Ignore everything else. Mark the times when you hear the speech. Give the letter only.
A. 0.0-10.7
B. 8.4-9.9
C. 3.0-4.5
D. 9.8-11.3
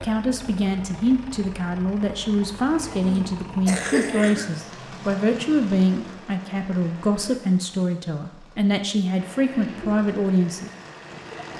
A.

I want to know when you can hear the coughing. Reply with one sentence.
The coughing can be heard from 3.0 to 4.5 s.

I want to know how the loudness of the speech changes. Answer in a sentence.
The volume of the speech stays about the same.